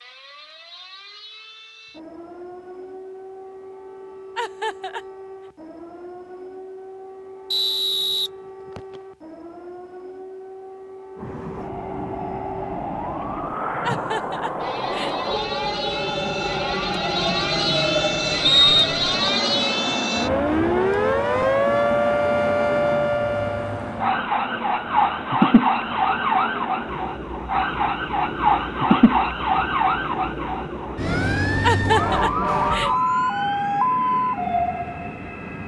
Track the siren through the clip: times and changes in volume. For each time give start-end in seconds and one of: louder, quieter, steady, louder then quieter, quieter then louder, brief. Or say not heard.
0.0-35.6 louder.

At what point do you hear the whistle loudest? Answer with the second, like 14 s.
19 s.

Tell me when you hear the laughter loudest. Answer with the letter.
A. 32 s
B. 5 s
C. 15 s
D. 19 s
A.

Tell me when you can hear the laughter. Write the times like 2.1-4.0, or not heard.
4.3-5.0, 13.8-15.2, 31.6-32.9.